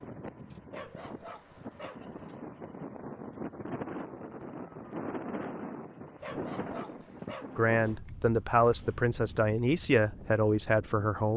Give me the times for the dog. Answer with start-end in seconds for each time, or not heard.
0.7-2.1, 6.2-7.7.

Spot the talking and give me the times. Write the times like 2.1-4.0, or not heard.
7.5-11.3.